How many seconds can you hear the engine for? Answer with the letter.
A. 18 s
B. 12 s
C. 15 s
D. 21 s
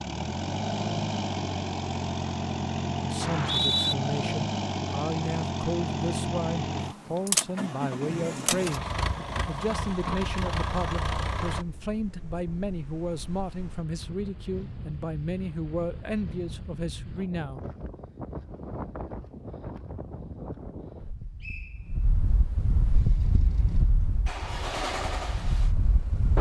C.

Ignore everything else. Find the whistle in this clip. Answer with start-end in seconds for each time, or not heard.
3.2-4.0, 21.4-22.1.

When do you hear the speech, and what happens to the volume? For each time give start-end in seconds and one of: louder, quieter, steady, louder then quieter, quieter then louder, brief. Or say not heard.
3.0-17.6 steady.